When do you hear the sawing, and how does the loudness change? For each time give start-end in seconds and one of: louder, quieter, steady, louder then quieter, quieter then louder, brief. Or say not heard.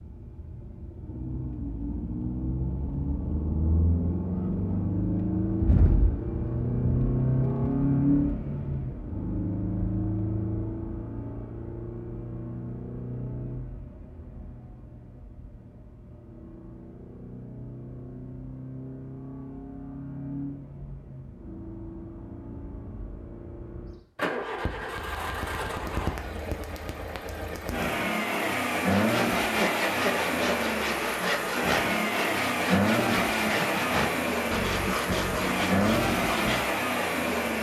28.9-36.6 steady.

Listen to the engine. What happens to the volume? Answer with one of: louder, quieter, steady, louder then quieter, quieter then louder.
quieter then louder.